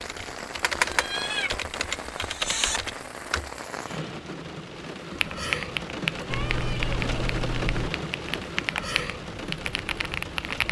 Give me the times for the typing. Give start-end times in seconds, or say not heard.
0.0-3.5, 5.1-10.6.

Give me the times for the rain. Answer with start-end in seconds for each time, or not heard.
0.0-10.6.